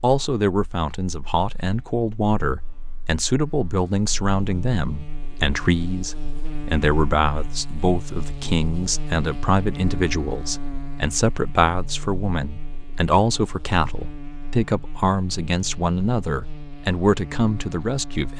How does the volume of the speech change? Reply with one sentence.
The loudness of the speech stays about the same.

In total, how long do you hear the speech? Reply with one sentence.
You can hear the speech for 18 seconds altogether.